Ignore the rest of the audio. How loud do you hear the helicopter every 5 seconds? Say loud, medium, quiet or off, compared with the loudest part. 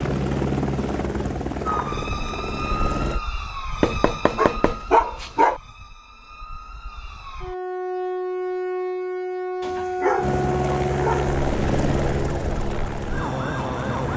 loud, off, loud.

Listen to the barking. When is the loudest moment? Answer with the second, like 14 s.
5 s.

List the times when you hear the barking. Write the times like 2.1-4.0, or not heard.
3.8-5.6, 9.6-11.3.